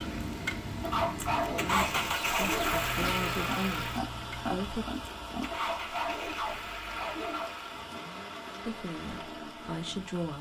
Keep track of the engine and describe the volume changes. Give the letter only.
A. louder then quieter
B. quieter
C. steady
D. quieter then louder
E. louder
B.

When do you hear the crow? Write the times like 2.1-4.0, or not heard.
not heard.